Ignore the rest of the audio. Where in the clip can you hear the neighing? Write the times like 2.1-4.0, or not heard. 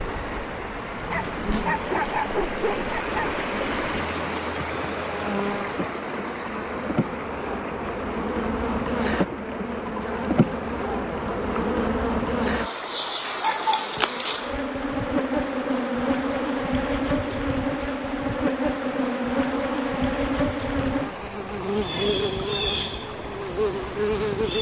not heard.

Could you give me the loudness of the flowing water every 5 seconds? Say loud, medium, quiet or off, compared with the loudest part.
loud, loud, medium, medium, medium.